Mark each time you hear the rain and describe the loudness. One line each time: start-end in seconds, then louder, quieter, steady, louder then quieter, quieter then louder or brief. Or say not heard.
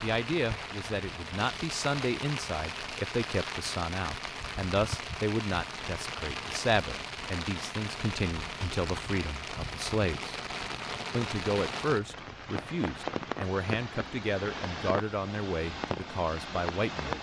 0.0-17.1 steady.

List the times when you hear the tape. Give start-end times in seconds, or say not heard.
not heard.